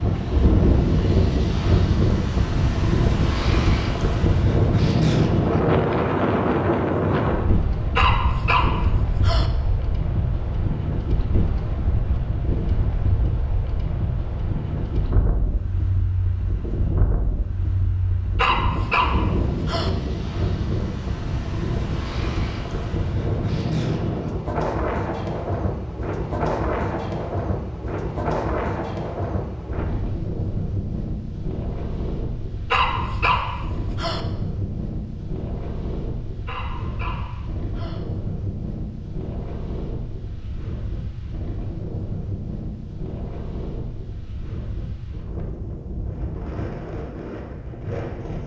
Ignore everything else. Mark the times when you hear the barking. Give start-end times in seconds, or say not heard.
8.0-9.5, 18.4-19.9, 32.7-34.2, 36.5-38.0.